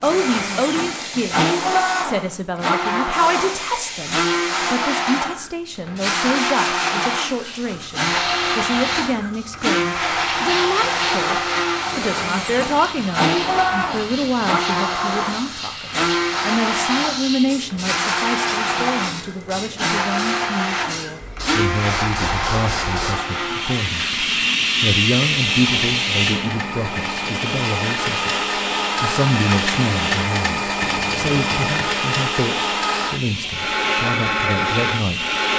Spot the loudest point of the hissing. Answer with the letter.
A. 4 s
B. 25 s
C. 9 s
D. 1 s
B.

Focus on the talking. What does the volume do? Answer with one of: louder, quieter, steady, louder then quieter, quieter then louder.
steady.